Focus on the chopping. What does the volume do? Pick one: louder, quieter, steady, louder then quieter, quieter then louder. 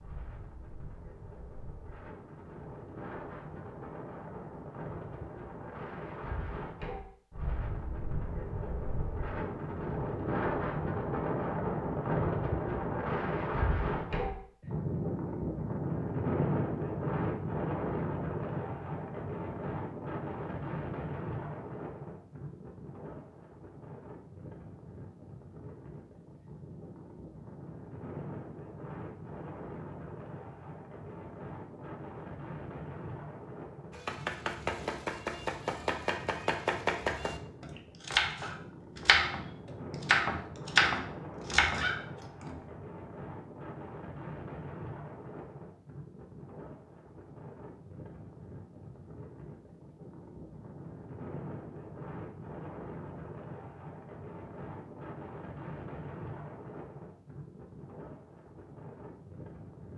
louder.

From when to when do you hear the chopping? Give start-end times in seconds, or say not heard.
33.9-42.6.